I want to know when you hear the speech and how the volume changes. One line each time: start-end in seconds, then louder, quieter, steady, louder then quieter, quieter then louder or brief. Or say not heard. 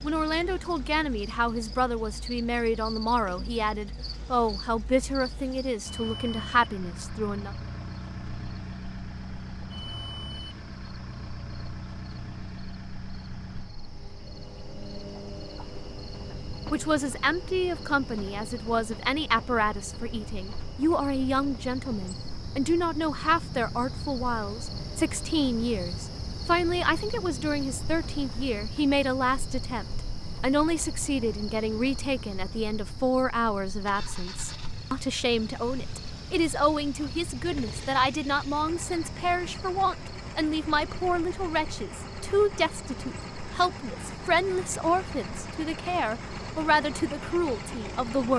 0.0-7.5 steady
16.7-48.3 steady.